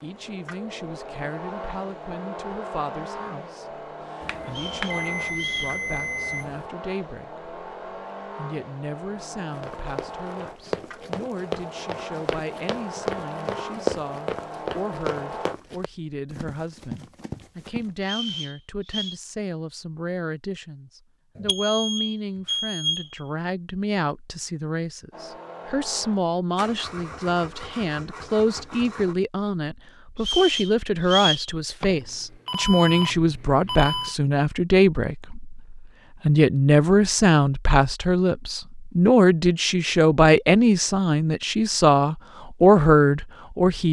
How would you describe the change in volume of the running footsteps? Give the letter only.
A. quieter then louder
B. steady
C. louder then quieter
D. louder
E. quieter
C.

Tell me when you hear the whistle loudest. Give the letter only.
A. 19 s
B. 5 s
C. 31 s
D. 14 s
C.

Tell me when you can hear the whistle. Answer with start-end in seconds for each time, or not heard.
4.5-5.8, 18.0-19.1, 30.1-31.5.